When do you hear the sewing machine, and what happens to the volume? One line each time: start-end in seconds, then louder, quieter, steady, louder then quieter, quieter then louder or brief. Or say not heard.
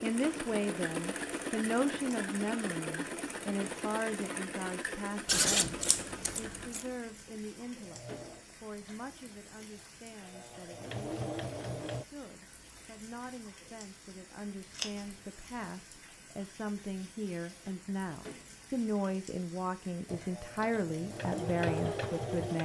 0.0-12.1 quieter then louder
20.1-22.6 brief.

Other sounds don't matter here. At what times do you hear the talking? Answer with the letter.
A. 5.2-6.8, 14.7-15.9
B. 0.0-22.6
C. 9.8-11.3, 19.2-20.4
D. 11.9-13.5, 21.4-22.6
B.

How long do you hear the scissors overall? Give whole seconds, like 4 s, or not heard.
3 s.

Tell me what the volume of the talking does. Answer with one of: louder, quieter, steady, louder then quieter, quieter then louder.
quieter then louder.